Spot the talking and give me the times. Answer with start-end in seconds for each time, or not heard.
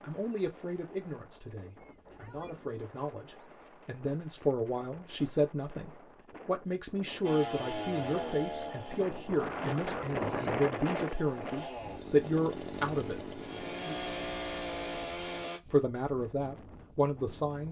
0.0-13.9, 15.7-17.6.